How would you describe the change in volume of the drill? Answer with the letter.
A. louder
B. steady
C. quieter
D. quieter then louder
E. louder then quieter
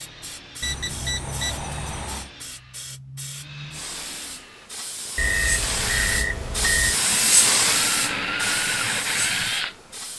A.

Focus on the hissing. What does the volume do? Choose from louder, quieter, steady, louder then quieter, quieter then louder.
louder then quieter.